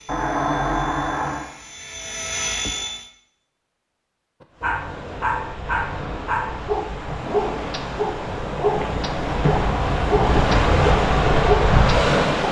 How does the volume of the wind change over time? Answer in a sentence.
The volume of the wind goes up.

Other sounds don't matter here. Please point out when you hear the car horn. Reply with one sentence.
The car horn can be heard from 0.1 to 1.5 s.